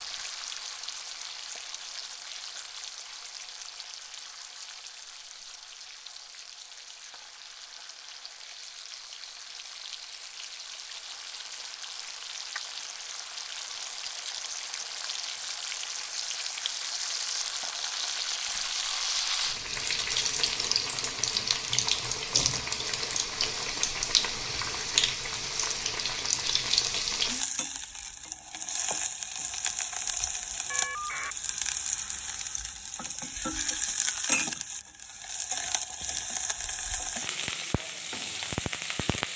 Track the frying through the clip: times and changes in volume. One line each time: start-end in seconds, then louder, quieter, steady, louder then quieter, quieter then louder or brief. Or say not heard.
0.0-39.3 louder.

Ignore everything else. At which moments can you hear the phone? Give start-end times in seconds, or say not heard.
30.7-31.4.